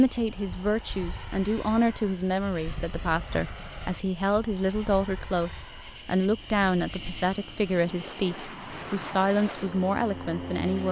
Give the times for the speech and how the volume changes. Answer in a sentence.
You can hear the speech from 0.0 to 10.8 s, at a steady volume.